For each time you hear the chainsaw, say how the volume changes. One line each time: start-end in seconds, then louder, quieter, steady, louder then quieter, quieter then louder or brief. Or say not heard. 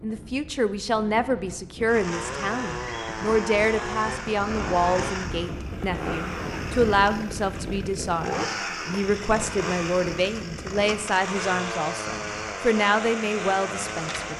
1.9-14.3 steady.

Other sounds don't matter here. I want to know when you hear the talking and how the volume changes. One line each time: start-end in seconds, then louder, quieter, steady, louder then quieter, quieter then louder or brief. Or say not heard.
0.0-14.3 steady.